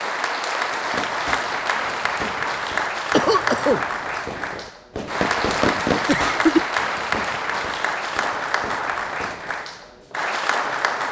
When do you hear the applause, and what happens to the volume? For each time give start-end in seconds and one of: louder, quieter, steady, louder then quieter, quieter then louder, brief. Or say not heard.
0.0-11.0 steady.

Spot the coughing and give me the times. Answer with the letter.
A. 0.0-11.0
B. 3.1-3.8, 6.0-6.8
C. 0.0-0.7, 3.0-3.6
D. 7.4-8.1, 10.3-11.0
B.